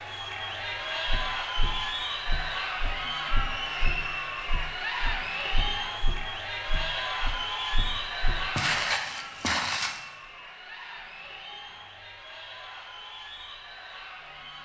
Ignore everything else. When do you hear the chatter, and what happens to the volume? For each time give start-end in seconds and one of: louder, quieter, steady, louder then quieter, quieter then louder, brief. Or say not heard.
0.0-14.6 quieter.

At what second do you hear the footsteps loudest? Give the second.
9 s.